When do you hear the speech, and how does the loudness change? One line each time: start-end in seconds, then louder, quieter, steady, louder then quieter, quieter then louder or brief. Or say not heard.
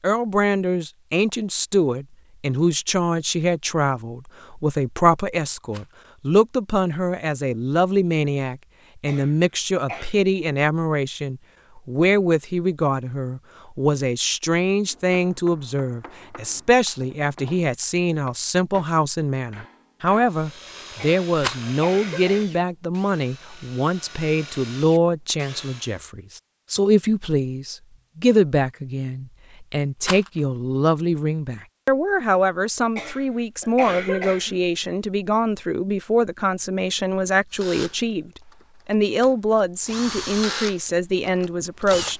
0.0-42.1 steady.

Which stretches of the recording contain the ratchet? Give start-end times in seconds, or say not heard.
not heard.